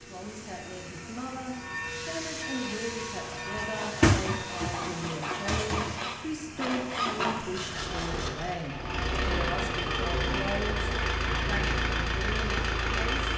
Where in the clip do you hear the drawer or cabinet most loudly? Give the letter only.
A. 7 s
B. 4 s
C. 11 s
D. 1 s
B.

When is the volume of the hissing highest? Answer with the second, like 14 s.
2 s.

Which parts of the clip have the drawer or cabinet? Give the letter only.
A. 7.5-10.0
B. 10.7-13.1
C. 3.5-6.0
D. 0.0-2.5
C.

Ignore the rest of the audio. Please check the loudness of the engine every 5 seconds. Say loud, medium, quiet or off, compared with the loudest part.
quiet, medium, loud.